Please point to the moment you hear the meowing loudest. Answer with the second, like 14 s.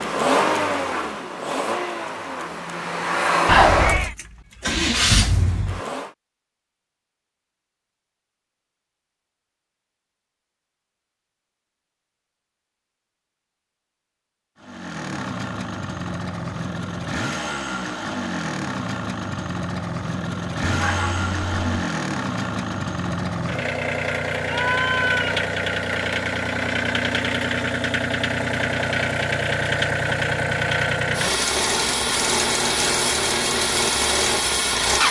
4 s.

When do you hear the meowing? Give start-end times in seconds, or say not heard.
3.5-4.2, 20.6-21.9, 24.4-25.3.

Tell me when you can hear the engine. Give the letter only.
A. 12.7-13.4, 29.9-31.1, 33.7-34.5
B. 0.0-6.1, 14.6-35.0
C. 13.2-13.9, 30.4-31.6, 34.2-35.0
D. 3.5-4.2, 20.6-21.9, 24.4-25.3
B.